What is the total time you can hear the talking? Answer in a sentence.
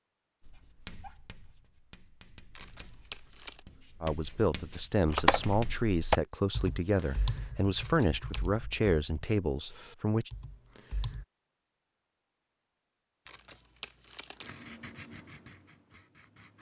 The talking can be heard for 6 seconds in total.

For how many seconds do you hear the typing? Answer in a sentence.
The typing can be heard for 6 seconds in total.